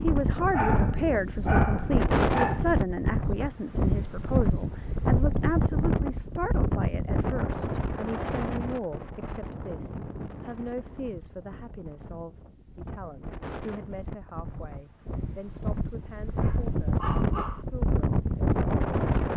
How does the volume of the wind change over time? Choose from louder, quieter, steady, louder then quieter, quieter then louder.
quieter then louder.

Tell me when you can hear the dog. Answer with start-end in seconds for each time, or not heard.
0.5-2.6, 16.4-17.6.